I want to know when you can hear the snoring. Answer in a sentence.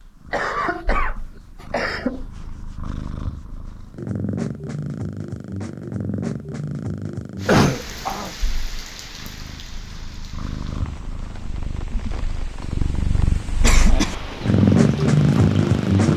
You can't hear the snoring here.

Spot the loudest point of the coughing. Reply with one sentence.
The loudest moment of the coughing is at 8 seconds.